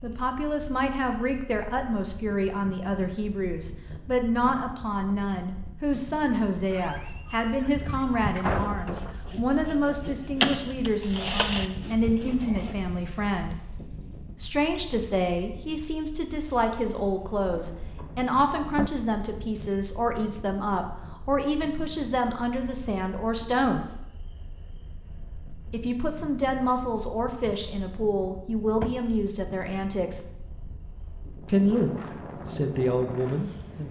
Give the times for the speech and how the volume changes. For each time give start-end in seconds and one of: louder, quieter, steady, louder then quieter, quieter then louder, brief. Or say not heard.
0.0-13.6 steady
14.4-23.9 steady
25.7-30.2 steady
31.4-33.8 brief.